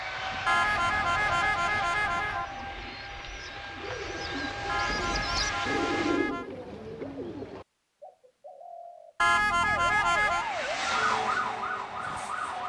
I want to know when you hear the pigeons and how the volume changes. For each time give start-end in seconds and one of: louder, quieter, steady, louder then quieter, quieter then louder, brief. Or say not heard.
2.4-9.2 louder then quieter.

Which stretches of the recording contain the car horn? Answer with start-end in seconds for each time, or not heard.
0.5-2.5, 4.7-6.5, 9.2-10.5.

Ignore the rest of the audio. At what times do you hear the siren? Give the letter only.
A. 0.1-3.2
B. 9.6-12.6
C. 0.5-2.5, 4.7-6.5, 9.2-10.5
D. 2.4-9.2
B.